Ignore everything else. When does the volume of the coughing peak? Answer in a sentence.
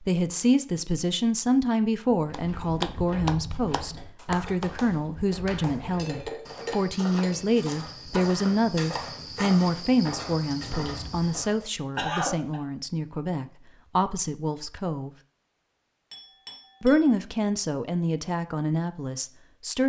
The volume of the coughing peaks at 12 seconds.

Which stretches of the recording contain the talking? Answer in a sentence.
You can hear the talking from 0.0 to 15.1 s and from 16.8 to 19.8 s.